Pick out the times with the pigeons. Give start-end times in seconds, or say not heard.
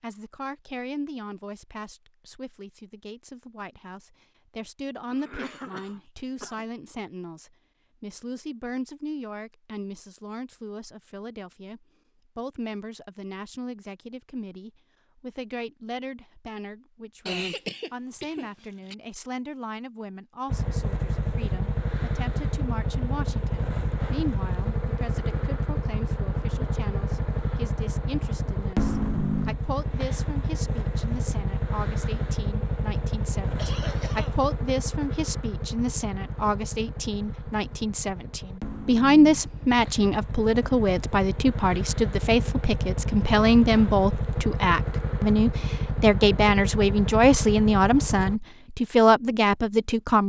not heard.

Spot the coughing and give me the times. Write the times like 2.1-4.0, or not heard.
5.1-6.7, 17.2-18.9, 33.5-34.4.